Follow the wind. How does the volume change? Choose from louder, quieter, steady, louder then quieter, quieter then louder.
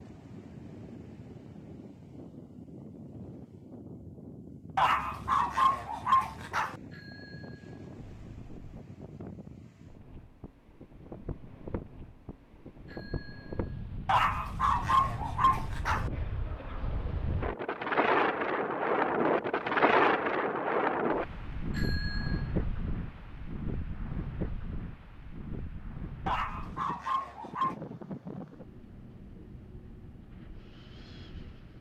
louder then quieter.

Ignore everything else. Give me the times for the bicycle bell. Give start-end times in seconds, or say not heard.
6.9-8.8, 12.8-13.8, 21.7-22.6.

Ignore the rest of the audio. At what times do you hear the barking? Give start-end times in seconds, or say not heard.
4.8-6.8, 14.1-16.1, 26.2-27.8.